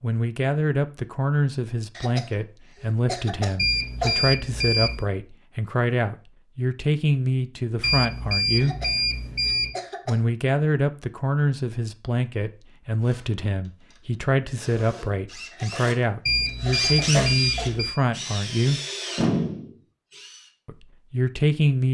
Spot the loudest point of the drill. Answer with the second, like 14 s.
19 s.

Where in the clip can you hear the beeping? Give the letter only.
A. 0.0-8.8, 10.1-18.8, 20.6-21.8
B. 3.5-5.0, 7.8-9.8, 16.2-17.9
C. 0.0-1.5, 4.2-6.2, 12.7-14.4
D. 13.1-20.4
B.